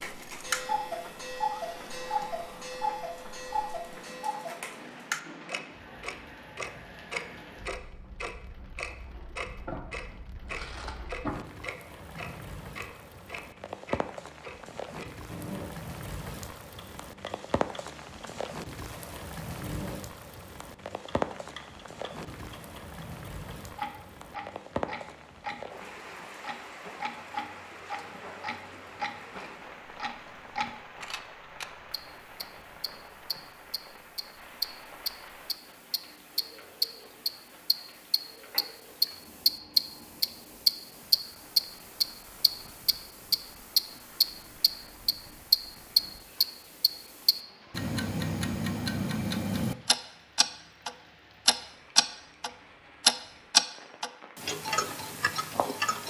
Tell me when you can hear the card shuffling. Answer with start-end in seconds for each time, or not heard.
9.7-11.3, 38.5-39.2.